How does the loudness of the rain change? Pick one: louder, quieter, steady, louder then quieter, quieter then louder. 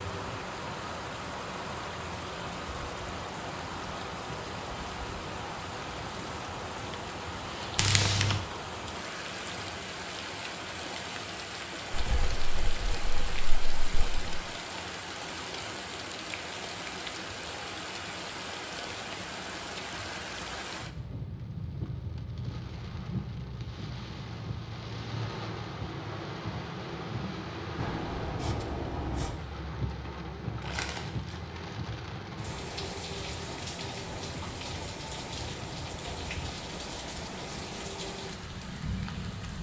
steady.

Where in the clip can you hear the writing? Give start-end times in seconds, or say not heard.
11.9-14.4, 27.8-29.4.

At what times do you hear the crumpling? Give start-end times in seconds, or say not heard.
7.8-8.4, 30.6-31.4.